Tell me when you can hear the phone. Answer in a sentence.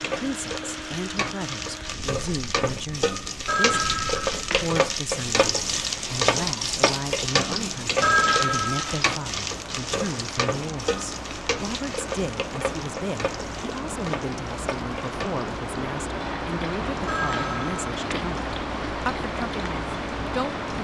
The phone can be heard from 3.5 to 4.8 s, from 8.0 to 9.2 s and from 17.1 to 18.2 s.